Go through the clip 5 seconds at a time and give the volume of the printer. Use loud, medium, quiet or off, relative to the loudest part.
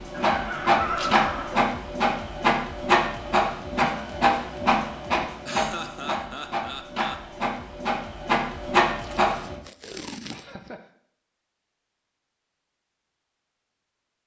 loud, loud, off.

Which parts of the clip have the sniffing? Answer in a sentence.
You can't hear the sniffing here.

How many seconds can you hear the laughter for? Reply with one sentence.
You can hear the laughter for 4 seconds altogether.